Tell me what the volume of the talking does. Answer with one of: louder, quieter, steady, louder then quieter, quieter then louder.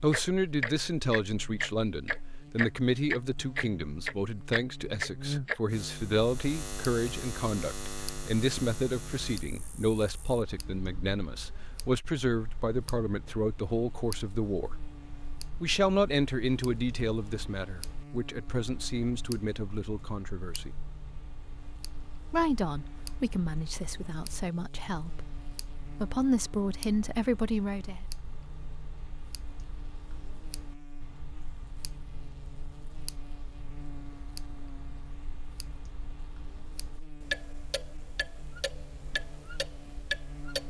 steady.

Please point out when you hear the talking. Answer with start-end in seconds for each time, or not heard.
0.0-14.8, 15.6-20.7, 22.3-28.0.